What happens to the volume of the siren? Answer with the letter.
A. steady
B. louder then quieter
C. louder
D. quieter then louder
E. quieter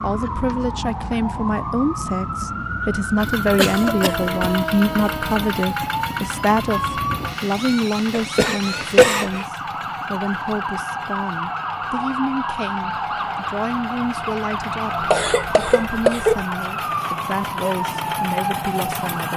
A.